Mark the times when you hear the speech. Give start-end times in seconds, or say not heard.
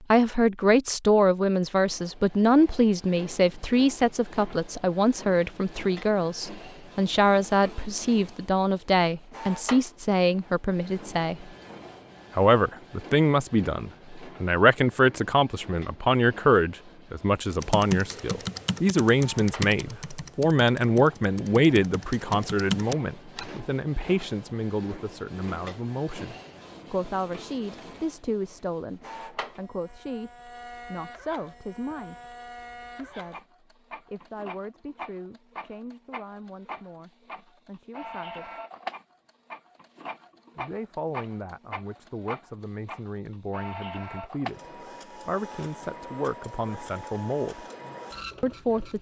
0.1-11.4, 12.3-38.5, 40.5-47.6, 48.4-48.9.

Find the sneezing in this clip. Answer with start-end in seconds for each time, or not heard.
not heard.